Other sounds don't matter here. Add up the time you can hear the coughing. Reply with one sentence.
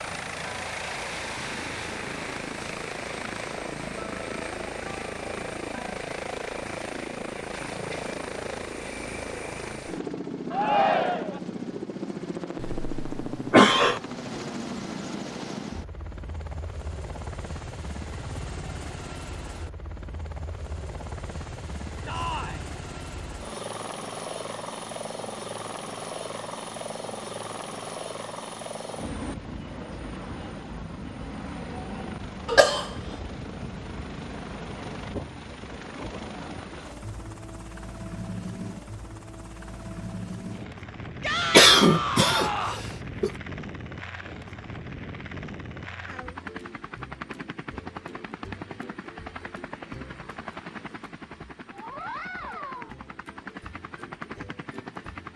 The coughing can be heard for 4 seconds in total.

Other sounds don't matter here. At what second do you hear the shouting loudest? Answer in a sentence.
The loudest moment of the shouting is at 11 seconds.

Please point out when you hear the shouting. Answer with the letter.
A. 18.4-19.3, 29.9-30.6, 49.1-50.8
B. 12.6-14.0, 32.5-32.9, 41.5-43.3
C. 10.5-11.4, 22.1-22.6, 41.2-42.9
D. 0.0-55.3
C.